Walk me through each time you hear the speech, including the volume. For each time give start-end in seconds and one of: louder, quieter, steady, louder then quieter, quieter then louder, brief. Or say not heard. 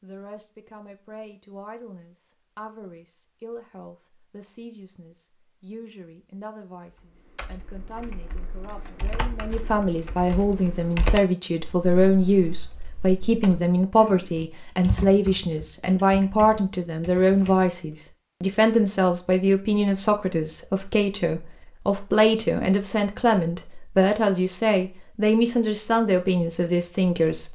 0.0-27.5 louder.